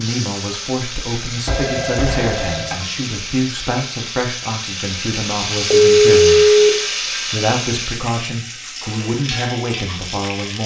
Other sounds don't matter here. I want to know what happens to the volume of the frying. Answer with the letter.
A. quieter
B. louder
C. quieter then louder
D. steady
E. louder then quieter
E.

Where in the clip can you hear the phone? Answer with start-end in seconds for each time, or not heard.
1.4-2.8, 5.7-6.7.